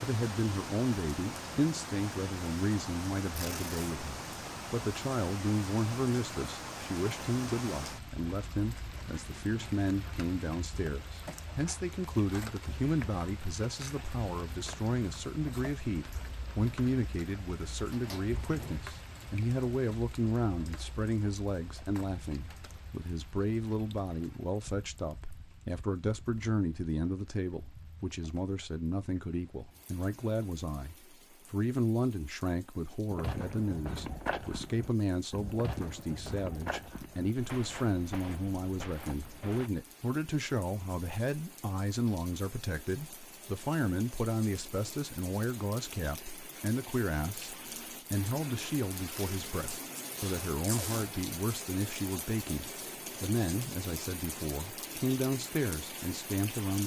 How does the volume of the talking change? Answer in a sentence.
The loudness of the talking stays about the same.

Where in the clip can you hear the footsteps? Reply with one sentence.
You can hear the footsteps from 33.1 to 39.7 s.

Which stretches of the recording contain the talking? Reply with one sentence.
The talking can be heard from 0.0 to 56.8 s.